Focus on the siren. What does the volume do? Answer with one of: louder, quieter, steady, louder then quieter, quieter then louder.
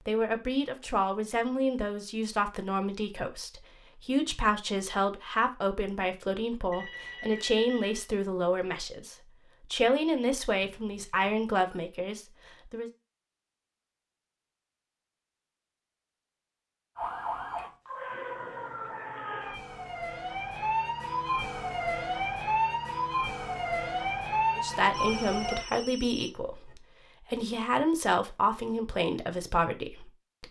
louder.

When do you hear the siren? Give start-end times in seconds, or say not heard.
16.9-25.6.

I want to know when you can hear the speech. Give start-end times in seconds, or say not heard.
0.1-12.9, 24.6-30.4.